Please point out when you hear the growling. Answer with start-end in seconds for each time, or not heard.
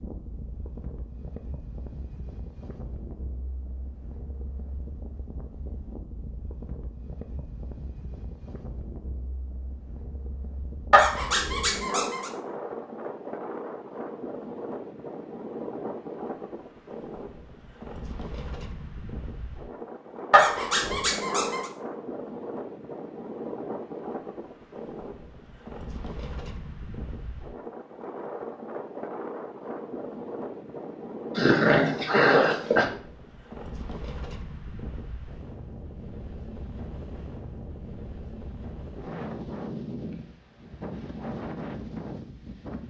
10.9-12.3, 20.3-21.7, 31.4-32.9.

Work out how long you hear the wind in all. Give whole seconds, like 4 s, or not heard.
43 s.